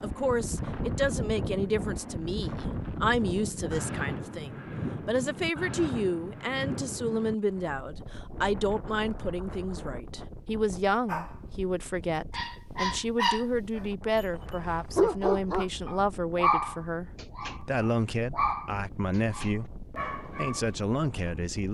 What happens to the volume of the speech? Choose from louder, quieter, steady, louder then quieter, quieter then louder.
steady.